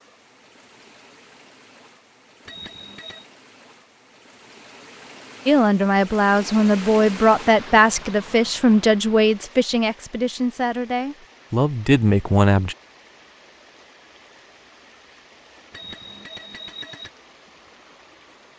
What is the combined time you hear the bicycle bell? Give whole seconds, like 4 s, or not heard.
2 s.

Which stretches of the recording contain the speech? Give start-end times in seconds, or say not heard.
5.5-12.8.